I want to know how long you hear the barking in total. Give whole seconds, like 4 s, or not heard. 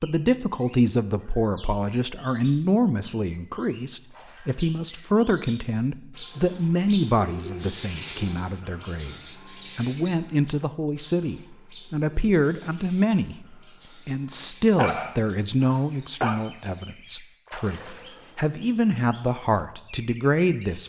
2 s.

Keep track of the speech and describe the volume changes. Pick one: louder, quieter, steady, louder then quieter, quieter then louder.
steady.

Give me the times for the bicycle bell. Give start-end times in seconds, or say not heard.
not heard.